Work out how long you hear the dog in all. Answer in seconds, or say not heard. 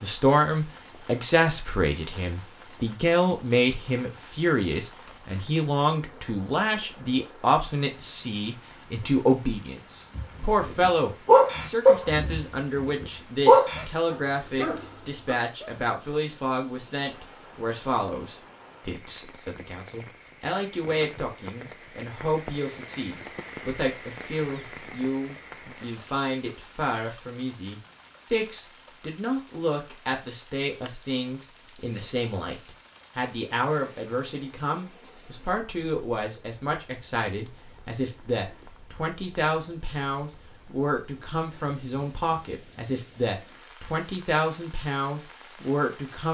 5 s.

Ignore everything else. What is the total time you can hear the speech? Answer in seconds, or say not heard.
46 s.